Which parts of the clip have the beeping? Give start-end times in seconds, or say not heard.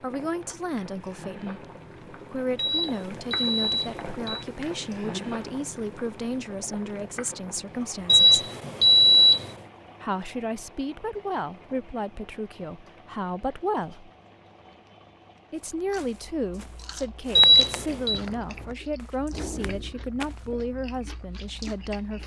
2.5-4.5, 8.1-9.6, 17.4-18.2.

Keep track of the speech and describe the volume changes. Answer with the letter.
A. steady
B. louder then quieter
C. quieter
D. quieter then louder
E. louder
A.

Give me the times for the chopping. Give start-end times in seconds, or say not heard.
not heard.